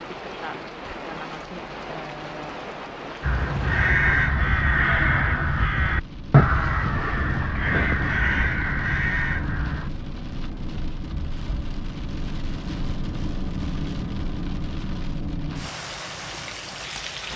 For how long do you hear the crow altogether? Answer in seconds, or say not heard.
7 s.